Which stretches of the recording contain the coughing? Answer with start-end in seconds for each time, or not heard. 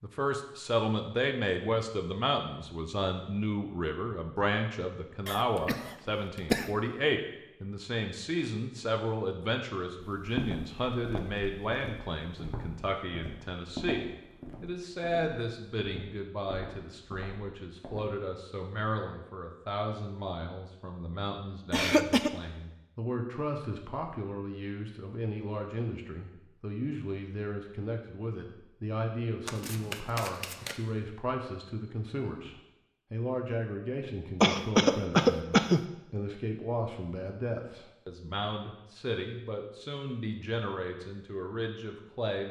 5.2-6.7, 21.7-22.3, 34.4-35.8.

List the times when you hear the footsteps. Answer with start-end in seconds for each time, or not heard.
10.0-18.1.